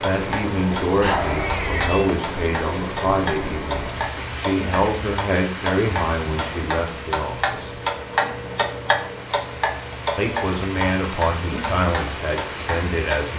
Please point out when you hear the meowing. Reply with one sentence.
You can hear the meowing from 1.0 to 2.1 s.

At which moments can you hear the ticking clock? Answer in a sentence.
The ticking clock can be heard from 0.0 to 13.3 s.